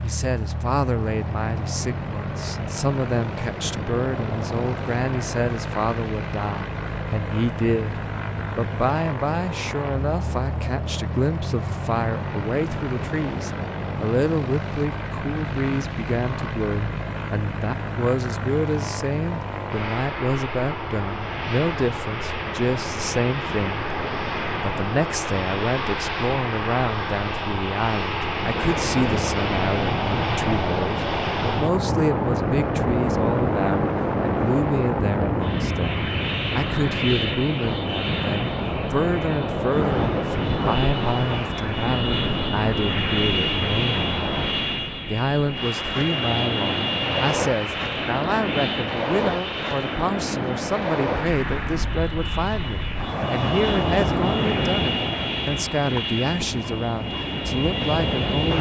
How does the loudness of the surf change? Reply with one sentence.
The loudness of the surf goes up.